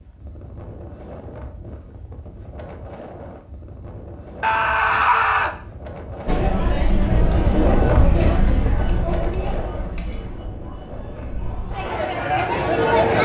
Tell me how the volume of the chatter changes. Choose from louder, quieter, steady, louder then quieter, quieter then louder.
quieter then louder.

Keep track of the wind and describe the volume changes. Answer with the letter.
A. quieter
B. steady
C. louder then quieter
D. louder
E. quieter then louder
C.